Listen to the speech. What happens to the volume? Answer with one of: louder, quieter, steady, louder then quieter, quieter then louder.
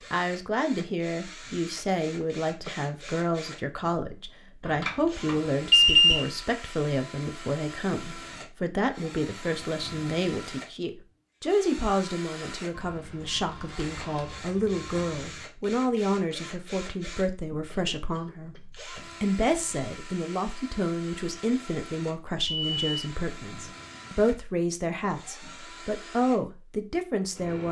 steady.